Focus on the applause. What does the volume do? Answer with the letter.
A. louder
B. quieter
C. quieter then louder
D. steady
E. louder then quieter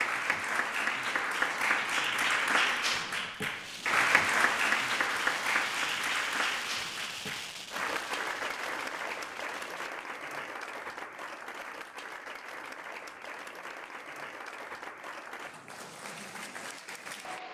B.